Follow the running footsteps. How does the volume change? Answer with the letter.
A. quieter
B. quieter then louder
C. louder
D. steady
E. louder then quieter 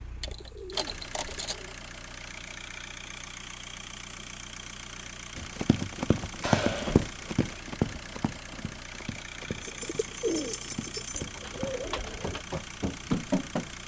B.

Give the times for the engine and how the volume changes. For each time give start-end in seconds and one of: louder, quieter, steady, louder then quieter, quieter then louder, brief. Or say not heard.
0.0-13.8 steady.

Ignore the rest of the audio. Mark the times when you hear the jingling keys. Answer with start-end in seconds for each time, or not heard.
0.2-1.6, 6.4-7.2, 9.6-11.2.